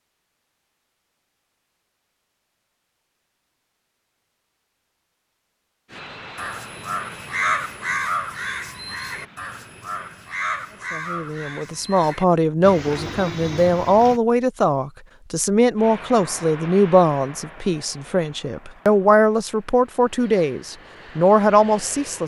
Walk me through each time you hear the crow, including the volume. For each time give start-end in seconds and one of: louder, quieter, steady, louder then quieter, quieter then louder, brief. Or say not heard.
6.3-14.2 quieter.